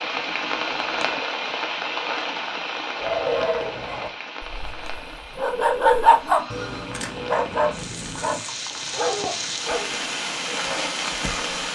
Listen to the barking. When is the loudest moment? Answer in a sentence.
The volume of the barking peaks at 6 seconds.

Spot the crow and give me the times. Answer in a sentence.
You can't hear the crow here.